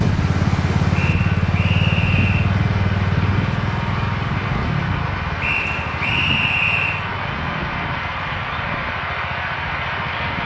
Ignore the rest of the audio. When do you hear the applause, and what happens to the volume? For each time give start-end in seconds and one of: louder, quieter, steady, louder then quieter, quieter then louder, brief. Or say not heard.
0.0-10.4 louder.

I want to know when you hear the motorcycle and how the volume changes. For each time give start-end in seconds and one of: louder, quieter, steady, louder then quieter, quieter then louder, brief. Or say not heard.
0.0-10.4 quieter.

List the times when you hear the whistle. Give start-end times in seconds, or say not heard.
0.9-2.5, 5.4-7.0.